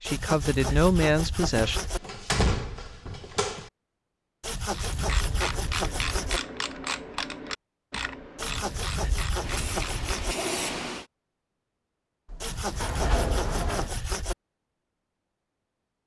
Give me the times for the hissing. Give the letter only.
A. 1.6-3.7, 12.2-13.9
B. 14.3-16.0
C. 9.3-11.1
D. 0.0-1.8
C.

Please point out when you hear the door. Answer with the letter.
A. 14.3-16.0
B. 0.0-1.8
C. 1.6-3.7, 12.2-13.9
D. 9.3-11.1
C.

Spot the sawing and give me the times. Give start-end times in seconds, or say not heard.
0.1-2.0, 4.4-6.4, 8.3-10.3, 12.4-14.3.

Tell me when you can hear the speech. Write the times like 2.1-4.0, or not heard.
0.0-1.8.